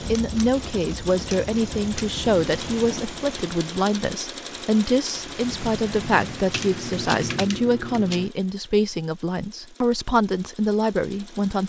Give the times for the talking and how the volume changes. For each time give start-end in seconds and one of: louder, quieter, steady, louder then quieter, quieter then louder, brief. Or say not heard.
0.1-11.6 steady.